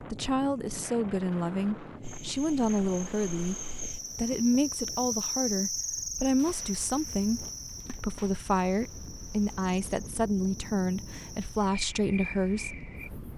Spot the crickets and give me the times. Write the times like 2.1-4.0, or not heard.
2.0-13.3.